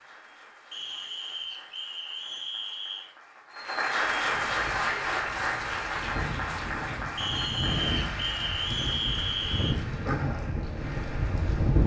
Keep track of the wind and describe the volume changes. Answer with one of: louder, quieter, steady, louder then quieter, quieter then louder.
louder.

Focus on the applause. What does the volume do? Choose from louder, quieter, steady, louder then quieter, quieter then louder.
louder then quieter.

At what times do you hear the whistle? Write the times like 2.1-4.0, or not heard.
0.7-3.0, 7.2-9.8.